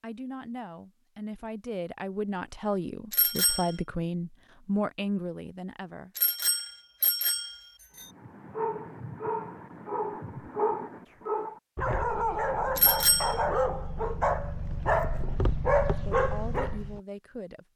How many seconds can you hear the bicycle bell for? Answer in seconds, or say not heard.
3 s.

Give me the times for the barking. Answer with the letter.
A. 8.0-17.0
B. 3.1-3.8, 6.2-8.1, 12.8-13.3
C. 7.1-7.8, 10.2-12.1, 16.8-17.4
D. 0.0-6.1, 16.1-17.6
A.